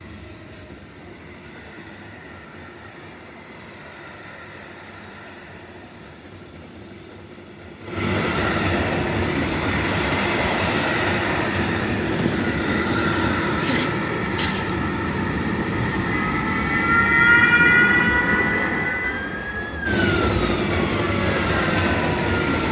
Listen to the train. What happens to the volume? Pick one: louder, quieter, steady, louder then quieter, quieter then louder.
louder.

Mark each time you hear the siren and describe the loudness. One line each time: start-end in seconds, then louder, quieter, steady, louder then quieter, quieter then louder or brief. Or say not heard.
16.1-22.6 quieter.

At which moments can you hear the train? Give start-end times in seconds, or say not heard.
0.0-22.6.